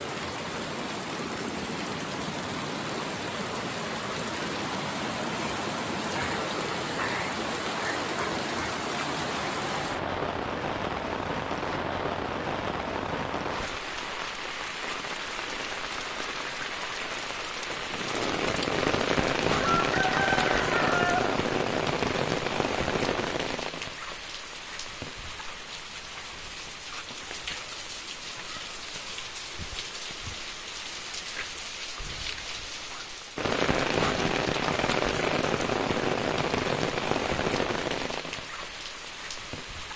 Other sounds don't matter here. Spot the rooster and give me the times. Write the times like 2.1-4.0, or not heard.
19.6-21.3.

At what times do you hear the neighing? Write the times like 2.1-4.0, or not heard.
not heard.